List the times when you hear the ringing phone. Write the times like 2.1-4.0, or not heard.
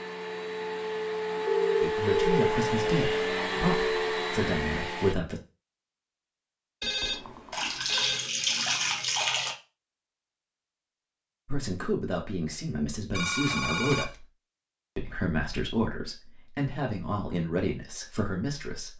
1.4-2.5, 6.8-8.2, 13.1-14.2.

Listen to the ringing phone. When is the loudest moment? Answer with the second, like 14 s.
2 s.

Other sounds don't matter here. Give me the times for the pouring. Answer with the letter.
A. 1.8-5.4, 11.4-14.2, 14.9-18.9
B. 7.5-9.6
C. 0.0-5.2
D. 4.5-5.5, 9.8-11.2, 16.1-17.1
B.